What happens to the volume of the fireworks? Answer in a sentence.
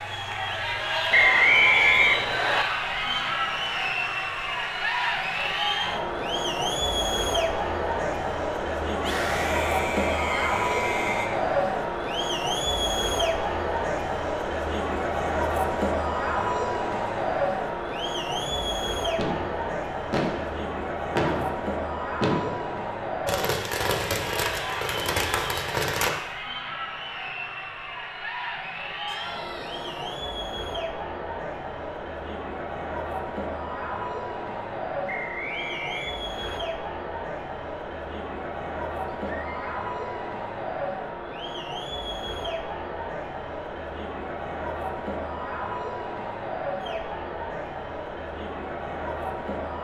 The volume of the fireworks stays about the same.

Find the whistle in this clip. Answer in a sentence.
The whistle can be heard from 1.1 to 2.6 s and from 35.0 to 36.6 s.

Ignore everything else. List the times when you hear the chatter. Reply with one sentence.
The chatter can be heard from 0.0 to 49.7 s.